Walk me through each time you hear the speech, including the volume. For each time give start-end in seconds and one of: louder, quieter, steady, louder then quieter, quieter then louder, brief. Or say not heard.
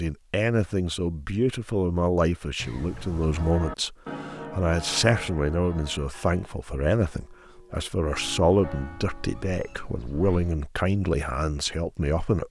0.0-12.4 steady.